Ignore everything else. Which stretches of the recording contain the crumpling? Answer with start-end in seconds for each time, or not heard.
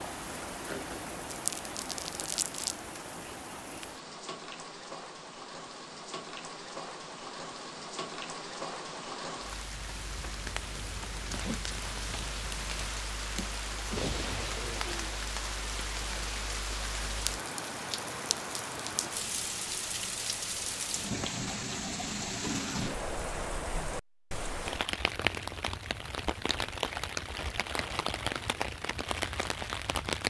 1.3-2.8.